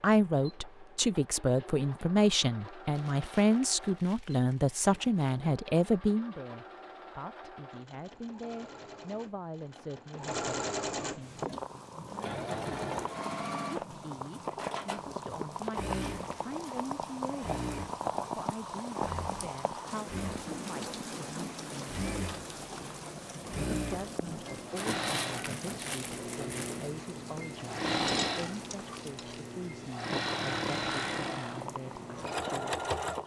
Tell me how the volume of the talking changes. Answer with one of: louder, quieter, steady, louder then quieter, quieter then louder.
quieter.